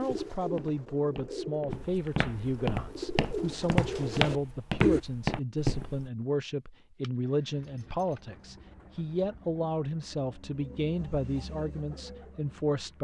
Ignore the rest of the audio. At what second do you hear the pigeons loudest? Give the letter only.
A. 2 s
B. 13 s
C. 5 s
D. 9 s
C.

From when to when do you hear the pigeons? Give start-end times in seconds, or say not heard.
0.0-5.0, 7.5-13.0.